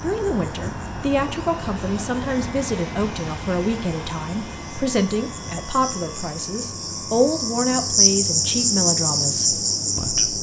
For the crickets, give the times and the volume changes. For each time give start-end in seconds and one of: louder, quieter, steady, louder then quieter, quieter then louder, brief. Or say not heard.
0.0-10.3 louder.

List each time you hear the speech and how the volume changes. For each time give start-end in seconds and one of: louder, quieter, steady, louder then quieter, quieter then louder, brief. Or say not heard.
0.0-10.3 steady.